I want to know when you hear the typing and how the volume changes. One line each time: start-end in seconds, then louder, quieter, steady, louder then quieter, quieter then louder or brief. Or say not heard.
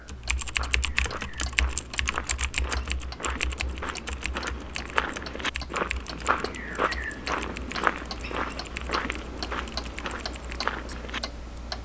0.1-10.7 quieter.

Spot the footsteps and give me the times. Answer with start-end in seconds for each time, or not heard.
0.5-11.2.